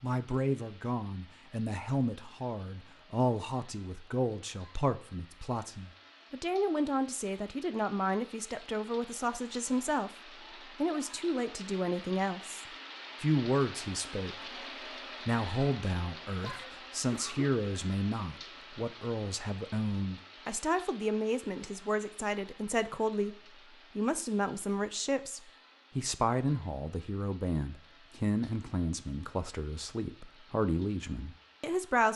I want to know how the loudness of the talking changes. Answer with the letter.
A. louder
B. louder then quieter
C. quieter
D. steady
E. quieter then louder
D.